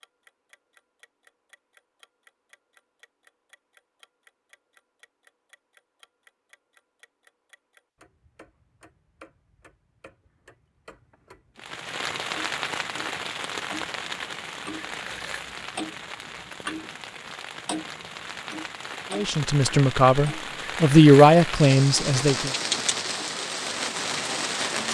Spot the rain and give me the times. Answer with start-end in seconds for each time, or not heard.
11.6-24.8.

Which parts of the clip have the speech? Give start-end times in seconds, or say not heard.
19.1-22.5.